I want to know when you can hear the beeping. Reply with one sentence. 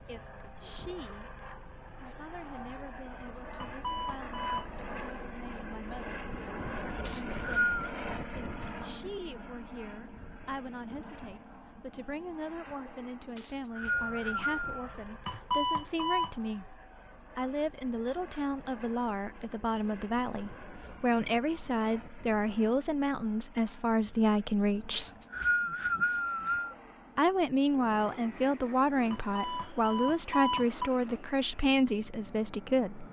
The beeping can be heard from 3.6 to 4.7 s, from 15.2 to 16.3 s and from 29.1 to 30.9 s.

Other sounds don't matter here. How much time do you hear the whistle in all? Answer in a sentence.
You can hear the whistle for 4 seconds altogether.